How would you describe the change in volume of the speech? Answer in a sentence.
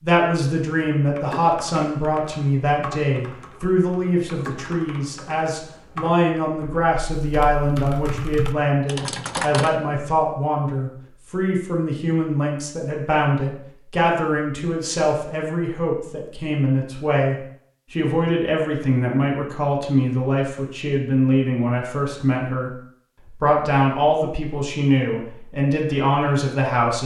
The loudness of the speech stays about the same.